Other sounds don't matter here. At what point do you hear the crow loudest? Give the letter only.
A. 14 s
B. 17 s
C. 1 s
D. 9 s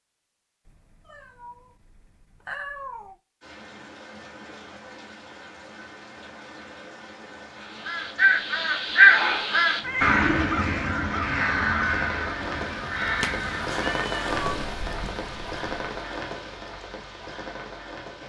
D.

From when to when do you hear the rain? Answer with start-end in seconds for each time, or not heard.
3.4-18.2.